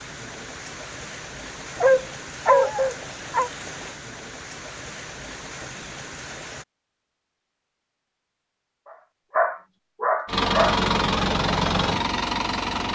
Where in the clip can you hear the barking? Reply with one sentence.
The barking can be heard from 1.8 to 3.5 s and from 8.9 to 10.8 s.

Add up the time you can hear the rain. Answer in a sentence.
You can hear the rain for 7 seconds altogether.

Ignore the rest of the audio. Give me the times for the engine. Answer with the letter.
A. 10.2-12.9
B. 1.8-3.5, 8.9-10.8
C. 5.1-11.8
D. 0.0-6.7
A.